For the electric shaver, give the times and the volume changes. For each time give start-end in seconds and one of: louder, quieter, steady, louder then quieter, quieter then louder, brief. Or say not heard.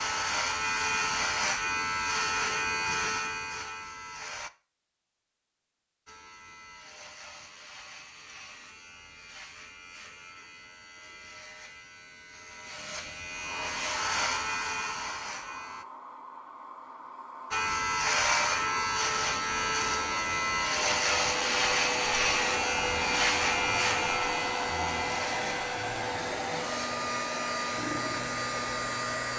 0.0-4.5 quieter
6.0-15.8 louder
17.5-29.3 quieter.